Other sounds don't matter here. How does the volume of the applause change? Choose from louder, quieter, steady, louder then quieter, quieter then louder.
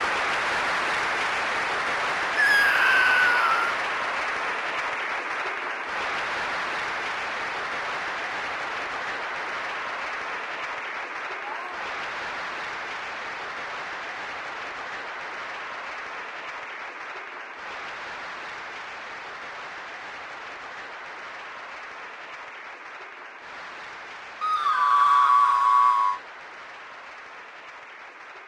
quieter.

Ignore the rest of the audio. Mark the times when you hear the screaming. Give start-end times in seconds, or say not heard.
2.4-3.8, 11.3-11.9, 24.4-26.2.